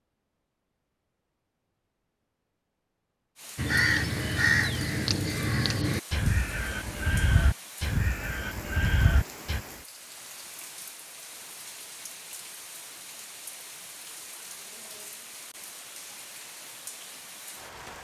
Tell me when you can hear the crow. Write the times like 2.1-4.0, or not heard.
3.5-9.6.